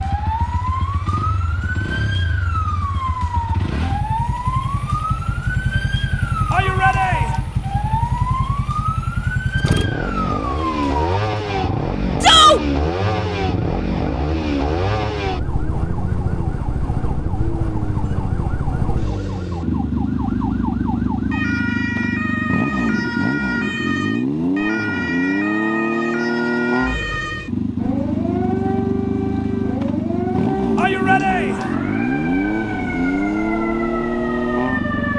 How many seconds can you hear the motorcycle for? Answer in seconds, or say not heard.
35 s.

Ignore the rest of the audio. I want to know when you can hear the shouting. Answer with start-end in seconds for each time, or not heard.
6.5-7.4, 12.2-12.6, 30.8-31.7.